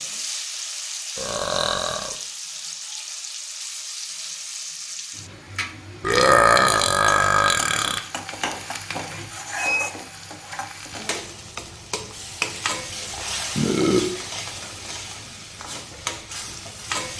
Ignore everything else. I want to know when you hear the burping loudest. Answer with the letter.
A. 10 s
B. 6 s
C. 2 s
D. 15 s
B.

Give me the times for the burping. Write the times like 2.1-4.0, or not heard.
1.1-2.1, 6.0-8.0, 13.6-14.2.